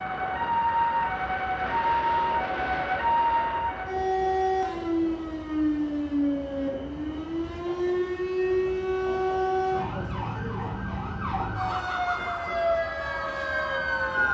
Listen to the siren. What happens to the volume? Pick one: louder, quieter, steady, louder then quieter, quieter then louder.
steady.